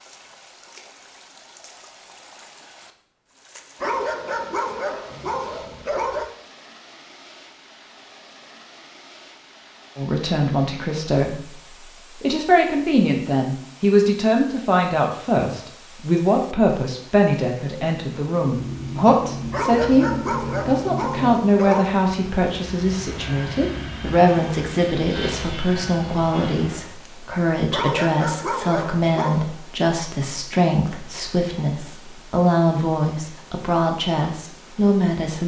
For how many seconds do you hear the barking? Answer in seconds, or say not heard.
7 s.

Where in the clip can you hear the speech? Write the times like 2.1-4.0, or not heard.
9.9-35.4.